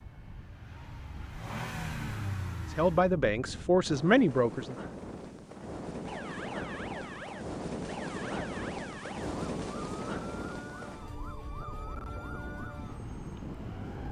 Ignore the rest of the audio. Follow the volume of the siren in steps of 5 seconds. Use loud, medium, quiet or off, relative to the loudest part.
off, loud, loud.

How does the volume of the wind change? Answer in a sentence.
The volume of the wind goes up, then down.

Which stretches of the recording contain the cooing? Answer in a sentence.
You can't hear the cooing here.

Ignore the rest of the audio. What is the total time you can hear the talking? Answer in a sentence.
You can hear the talking for 2 seconds altogether.